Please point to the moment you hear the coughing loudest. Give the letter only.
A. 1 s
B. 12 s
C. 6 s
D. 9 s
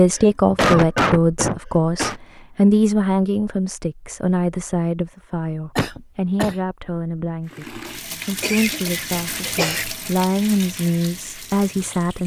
A.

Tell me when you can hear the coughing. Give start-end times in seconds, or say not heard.
0.1-2.1, 5.8-6.5, 8.4-9.8.